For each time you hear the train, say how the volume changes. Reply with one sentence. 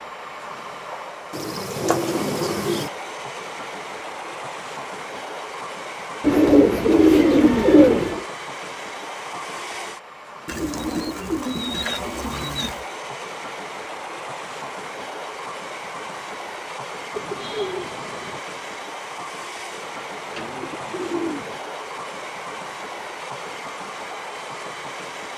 The train can be heard from 0.0 to 25.3 s, at a steady volume.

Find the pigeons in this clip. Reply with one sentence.
You can hear the pigeons from 1.3 to 2.9 s, from 6.2 to 8.2 s, from 10.4 to 12.8 s, from 17.1 to 18.4 s and from 20.4 to 21.6 s.